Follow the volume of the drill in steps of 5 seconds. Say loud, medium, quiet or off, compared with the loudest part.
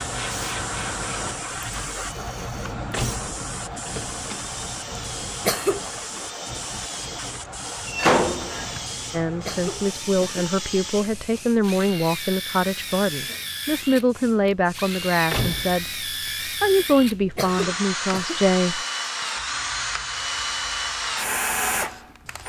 quiet, medium, medium, loud, loud.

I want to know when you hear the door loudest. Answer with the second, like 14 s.
8 s.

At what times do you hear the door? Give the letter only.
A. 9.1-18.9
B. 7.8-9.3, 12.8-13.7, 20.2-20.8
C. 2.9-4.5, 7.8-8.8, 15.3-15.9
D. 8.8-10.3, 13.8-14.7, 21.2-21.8
C.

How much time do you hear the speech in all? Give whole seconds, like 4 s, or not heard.
10 s.